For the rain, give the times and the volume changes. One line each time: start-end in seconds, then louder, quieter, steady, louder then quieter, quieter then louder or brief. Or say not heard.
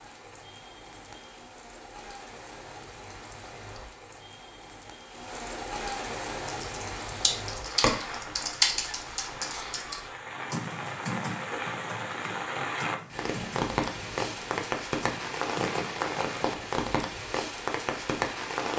0.0-18.7 louder.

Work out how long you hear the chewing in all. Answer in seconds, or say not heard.
not heard.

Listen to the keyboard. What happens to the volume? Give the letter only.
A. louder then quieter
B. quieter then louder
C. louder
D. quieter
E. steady
D.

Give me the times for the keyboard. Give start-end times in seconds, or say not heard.
6.5-16.6.